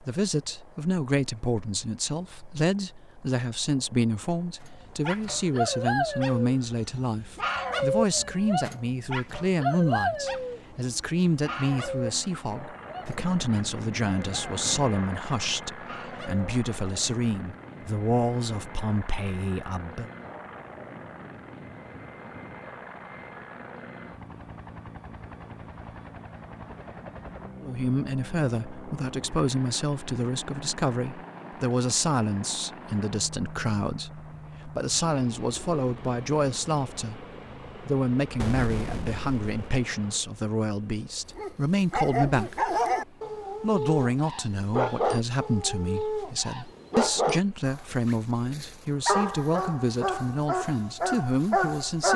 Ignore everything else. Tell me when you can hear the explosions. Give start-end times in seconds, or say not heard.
38.4-39.7.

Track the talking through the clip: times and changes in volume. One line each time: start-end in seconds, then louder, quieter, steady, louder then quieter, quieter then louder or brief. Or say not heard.
0.0-20.1 steady
27.6-42.8 steady
43.6-52.1 steady.